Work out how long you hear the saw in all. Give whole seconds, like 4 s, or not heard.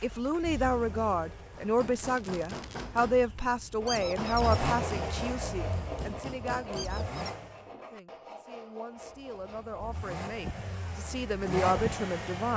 6 s.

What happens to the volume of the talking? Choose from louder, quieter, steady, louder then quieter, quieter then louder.
quieter then louder.